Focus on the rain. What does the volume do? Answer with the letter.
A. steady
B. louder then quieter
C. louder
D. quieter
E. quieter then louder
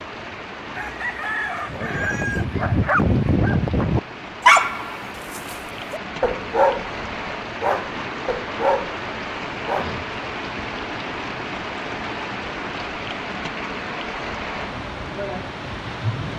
C.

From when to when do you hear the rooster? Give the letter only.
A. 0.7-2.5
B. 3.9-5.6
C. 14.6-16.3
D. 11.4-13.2
A.